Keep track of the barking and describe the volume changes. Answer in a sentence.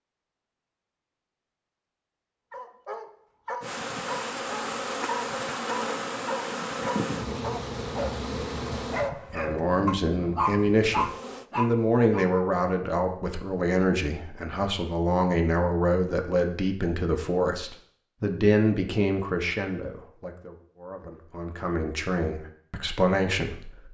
The loudness of the barking goes up.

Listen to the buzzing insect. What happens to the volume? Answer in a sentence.
The loudness of the buzzing insect goes down.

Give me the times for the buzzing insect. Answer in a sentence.
The buzzing insect can be heard from 3.6 to 11.4 s.